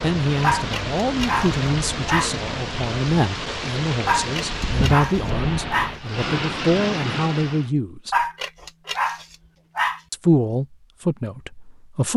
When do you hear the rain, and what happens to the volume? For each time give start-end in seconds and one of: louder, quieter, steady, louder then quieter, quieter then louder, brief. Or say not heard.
0.0-7.7 steady.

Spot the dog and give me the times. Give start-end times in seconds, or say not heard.
0.4-2.3, 4.0-6.0, 8.1-10.0.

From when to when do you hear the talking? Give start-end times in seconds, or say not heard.
0.0-8.2, 10.1-12.1.